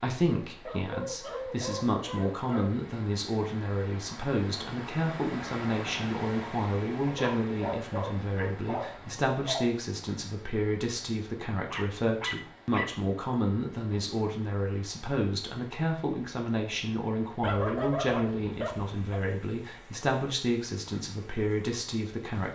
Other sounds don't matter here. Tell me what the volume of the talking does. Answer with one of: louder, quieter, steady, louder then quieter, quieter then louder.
steady.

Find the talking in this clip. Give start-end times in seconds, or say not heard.
0.0-22.5.